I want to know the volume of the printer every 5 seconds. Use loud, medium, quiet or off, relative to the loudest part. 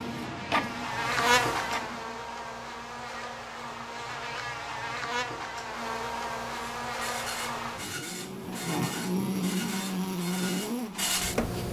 loud, medium, loud.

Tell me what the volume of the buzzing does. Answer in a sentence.
The volume of the buzzing goes down, then up.